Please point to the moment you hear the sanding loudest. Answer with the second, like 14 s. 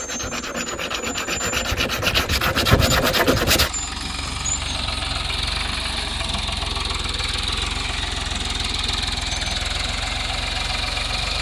3 s.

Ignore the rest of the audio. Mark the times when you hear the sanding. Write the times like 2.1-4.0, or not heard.
0.0-3.7.